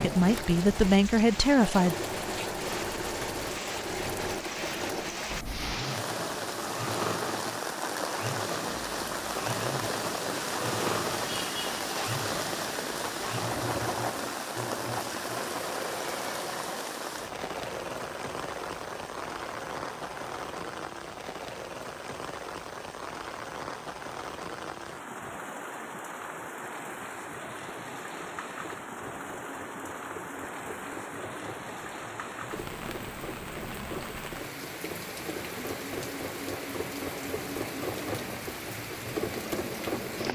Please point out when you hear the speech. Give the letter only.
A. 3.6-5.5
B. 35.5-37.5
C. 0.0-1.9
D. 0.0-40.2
C.